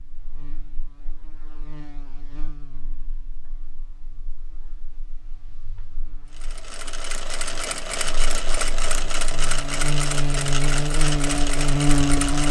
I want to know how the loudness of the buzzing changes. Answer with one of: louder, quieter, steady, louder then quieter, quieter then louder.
quieter then louder.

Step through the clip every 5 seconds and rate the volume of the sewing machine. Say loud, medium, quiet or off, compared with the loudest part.
off, loud, loud.